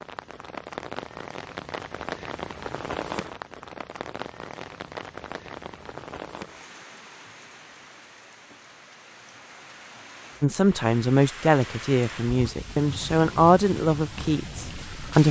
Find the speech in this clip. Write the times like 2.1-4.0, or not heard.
10.4-15.2.